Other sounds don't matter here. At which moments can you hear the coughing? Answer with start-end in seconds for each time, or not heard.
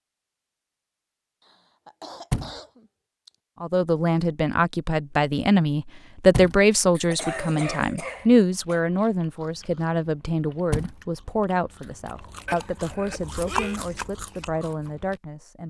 1.4-3.3, 7.0-8.8, 12.4-13.8.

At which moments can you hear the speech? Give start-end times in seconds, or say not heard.
3.6-15.6.